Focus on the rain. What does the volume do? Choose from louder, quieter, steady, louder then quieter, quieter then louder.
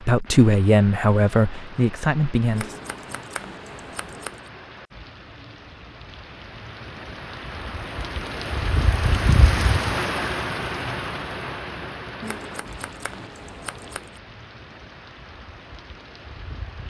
louder then quieter.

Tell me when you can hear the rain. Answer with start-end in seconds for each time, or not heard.
0.0-16.8.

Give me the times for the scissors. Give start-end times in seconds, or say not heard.
2.5-4.5, 12.2-14.2.